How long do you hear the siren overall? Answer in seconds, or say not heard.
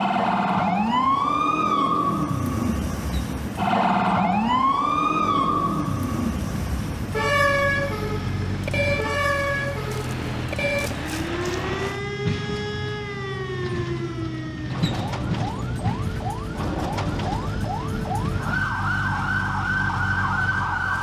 21 s.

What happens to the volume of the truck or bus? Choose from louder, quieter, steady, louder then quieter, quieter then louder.
louder.